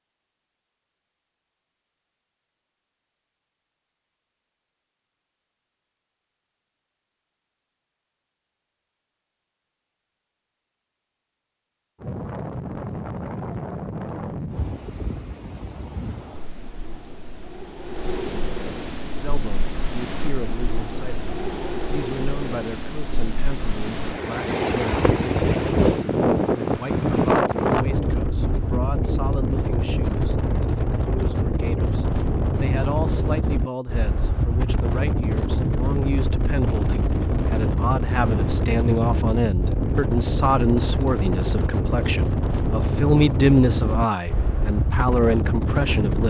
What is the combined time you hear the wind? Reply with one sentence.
You can hear the wind for 34 seconds altogether.